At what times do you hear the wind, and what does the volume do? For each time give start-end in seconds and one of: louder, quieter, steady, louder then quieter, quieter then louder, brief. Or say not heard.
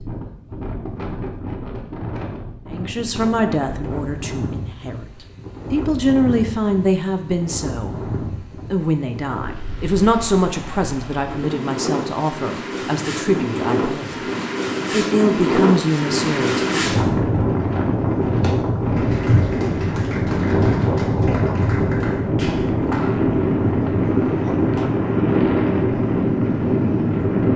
0.0-27.5 louder.